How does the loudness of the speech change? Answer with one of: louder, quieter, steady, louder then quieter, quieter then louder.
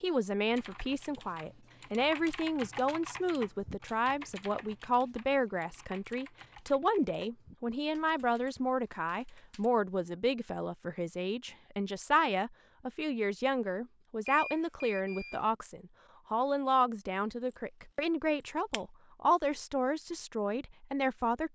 steady.